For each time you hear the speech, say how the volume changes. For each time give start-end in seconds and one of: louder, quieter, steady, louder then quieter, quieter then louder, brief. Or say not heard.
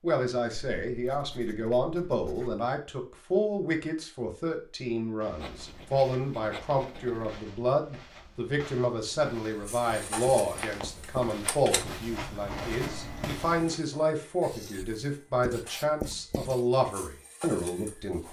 0.0-18.2 steady.